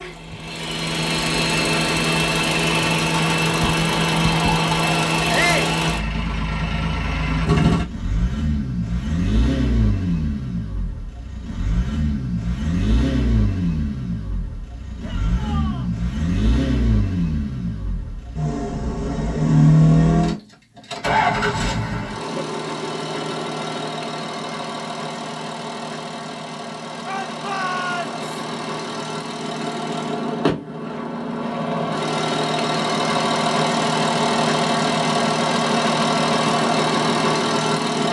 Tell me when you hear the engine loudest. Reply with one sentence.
The volume of the engine peaks at 20 seconds.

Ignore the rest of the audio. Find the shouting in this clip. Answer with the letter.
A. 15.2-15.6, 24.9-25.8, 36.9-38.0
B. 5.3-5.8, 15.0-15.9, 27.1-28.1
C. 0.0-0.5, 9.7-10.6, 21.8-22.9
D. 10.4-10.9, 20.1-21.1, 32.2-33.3
B.